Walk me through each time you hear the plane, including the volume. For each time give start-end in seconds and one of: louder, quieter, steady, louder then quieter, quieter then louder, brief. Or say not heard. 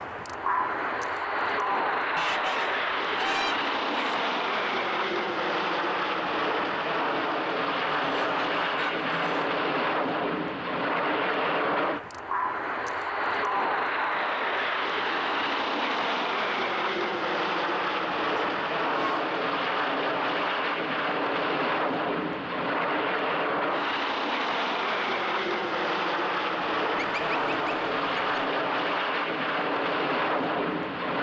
0.0-31.1 steady.